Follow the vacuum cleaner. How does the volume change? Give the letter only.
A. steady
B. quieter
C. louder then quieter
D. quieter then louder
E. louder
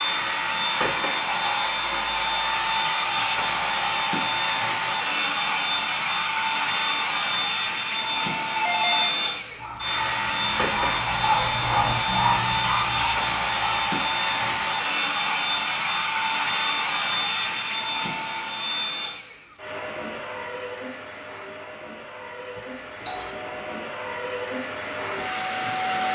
B.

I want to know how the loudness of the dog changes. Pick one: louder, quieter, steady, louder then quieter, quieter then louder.
louder then quieter.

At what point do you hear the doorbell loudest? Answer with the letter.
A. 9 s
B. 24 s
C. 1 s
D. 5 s
A.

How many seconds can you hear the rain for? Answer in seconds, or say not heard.
not heard.